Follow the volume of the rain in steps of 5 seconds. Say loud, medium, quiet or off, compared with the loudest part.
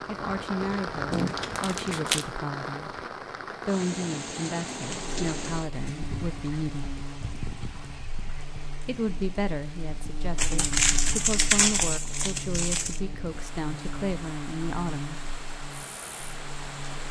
loud, medium, medium, medium.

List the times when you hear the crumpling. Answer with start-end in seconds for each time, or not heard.
1.1-2.2, 10.3-13.0.